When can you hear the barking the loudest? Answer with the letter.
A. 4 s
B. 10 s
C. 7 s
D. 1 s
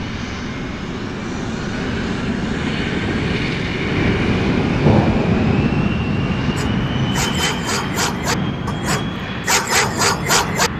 B.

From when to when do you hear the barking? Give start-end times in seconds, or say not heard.
6.5-10.7.